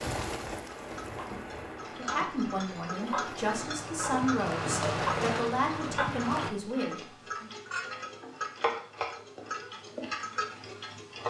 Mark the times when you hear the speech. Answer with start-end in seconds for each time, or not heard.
1.9-7.5.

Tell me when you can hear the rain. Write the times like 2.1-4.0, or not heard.
0.0-6.5.